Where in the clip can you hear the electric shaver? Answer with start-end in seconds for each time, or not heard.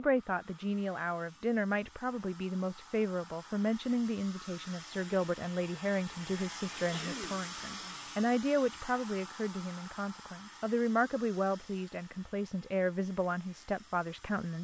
not heard.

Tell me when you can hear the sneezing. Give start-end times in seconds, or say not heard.
6.8-8.1.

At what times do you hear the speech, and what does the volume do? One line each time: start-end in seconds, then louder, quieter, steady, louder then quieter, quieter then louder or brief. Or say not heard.
0.0-14.6 steady.